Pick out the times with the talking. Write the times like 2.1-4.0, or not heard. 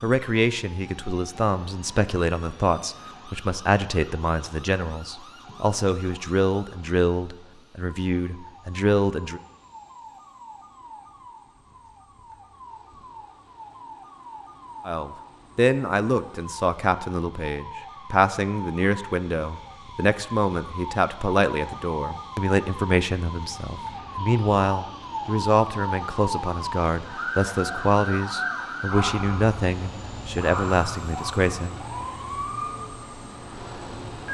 0.0-9.4, 14.8-31.8.